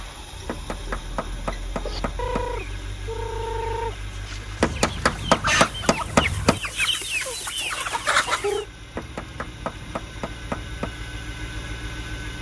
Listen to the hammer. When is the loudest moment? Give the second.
5 s.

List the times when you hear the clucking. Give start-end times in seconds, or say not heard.
1.8-8.7.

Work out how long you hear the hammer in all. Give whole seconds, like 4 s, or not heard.
6 s.